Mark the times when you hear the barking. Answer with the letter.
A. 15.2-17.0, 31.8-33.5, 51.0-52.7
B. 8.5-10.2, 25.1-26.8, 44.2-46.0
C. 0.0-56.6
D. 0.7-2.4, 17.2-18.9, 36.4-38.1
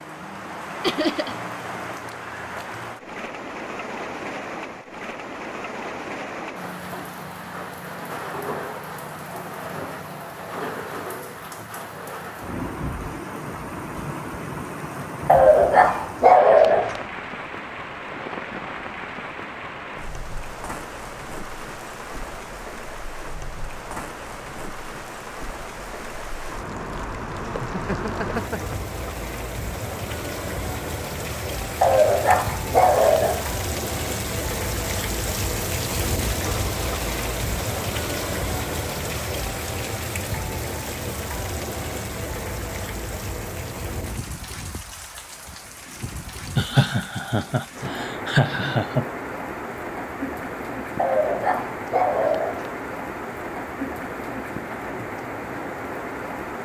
A.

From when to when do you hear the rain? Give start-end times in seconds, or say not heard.
0.0-56.6.